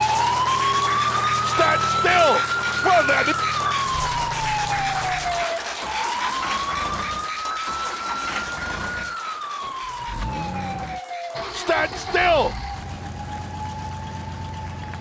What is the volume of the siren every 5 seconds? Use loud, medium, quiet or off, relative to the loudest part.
loud, medium, quiet.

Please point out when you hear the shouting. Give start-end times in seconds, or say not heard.
1.4-3.4, 11.5-12.6.